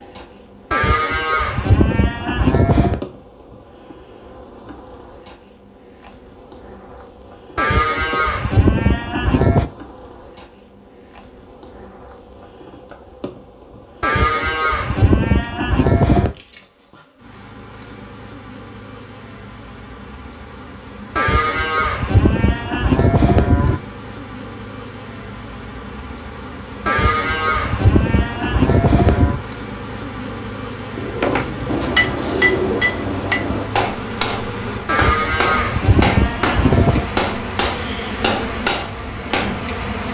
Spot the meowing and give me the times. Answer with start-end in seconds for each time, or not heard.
not heard.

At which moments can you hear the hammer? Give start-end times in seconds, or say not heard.
31.2-39.6.